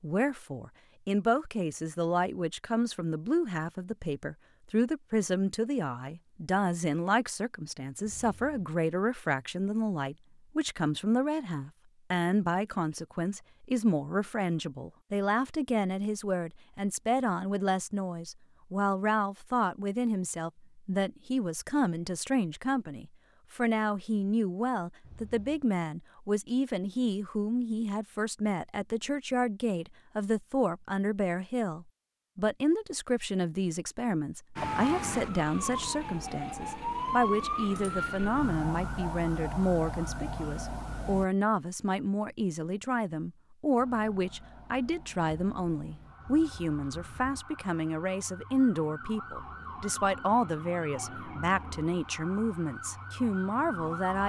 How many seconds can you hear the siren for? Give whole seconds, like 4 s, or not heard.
17 s.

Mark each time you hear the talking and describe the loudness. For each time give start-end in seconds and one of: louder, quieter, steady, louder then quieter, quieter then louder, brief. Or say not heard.
0.0-54.2 steady.